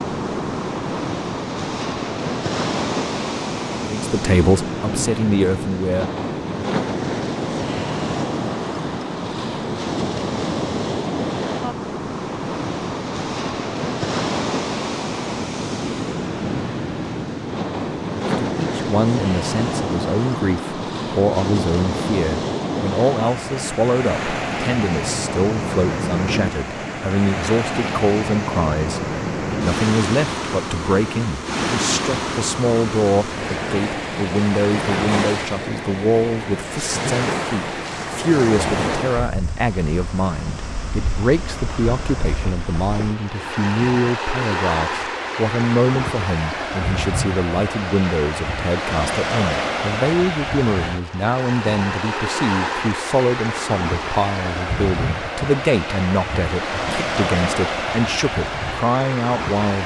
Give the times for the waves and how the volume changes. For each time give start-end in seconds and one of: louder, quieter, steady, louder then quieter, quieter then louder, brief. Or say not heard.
0.0-59.8 steady.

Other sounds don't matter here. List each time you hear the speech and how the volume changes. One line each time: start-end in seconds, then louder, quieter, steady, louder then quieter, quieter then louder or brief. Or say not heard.
3.9-6.1 brief
18.2-59.8 steady.